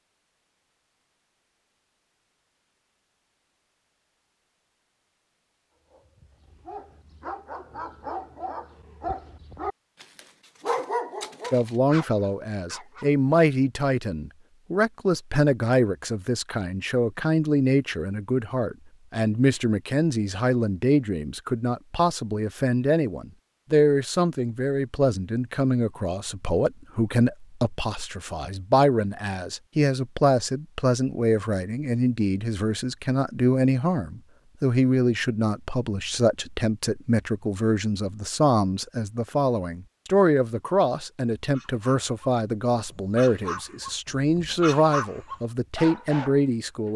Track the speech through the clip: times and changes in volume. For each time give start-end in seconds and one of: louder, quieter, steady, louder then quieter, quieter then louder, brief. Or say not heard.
11.5-46.9 steady.